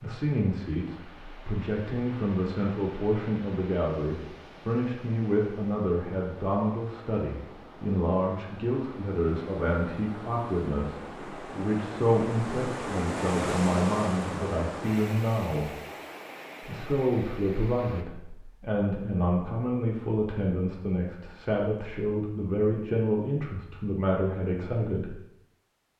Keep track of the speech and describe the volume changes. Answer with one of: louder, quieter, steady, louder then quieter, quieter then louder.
steady.